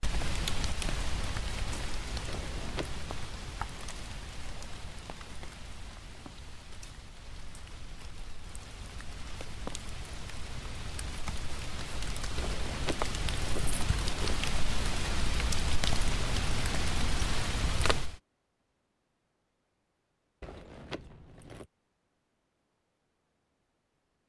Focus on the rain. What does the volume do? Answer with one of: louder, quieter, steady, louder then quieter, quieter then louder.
quieter then louder.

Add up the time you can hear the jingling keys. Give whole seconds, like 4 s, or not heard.
4 s.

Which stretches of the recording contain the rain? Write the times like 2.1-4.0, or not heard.
0.0-18.2.